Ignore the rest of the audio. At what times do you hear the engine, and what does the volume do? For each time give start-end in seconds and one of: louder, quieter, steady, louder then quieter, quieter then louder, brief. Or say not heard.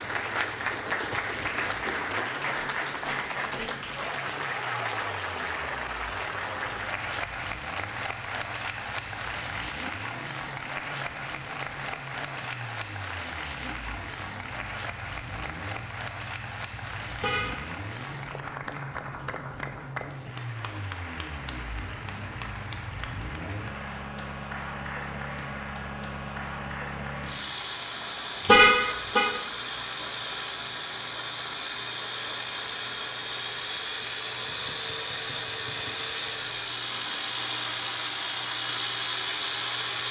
0.0-40.0 louder.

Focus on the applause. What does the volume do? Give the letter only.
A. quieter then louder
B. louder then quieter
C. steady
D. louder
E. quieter
E.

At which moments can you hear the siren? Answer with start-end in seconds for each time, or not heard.
not heard.